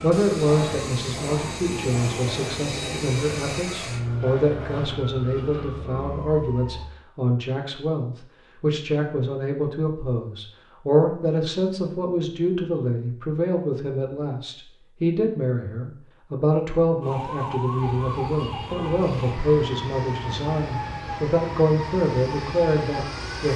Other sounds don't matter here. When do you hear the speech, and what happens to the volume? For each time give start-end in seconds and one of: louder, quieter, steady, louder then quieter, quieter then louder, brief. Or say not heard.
0.0-23.5 steady.